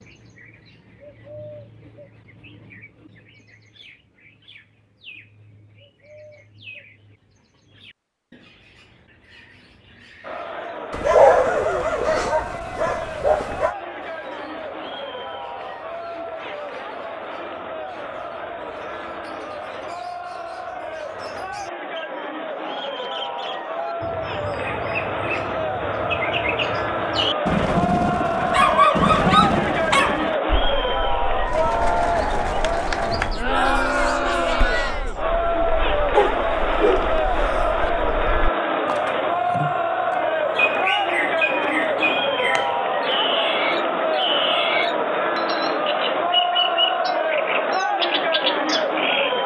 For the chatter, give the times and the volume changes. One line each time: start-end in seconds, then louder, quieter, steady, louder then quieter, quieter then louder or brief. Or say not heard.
10.2-49.4 louder.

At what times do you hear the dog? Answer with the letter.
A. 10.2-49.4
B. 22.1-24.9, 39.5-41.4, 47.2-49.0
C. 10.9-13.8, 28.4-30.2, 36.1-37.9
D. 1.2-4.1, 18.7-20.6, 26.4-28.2
C.